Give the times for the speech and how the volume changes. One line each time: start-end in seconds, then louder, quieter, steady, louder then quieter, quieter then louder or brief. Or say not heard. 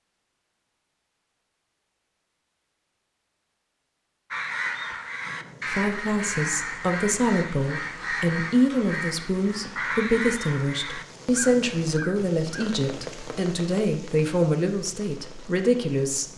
5.7-16.3 steady.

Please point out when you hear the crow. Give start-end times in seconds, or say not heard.
4.3-12.8.